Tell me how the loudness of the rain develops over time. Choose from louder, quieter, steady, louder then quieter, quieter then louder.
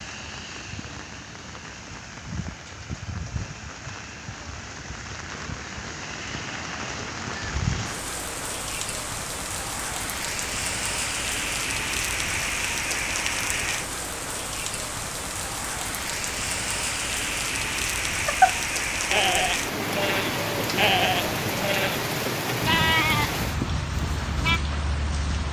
louder.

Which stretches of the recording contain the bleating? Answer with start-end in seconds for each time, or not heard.
18.2-24.6.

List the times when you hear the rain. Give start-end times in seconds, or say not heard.
0.0-25.4.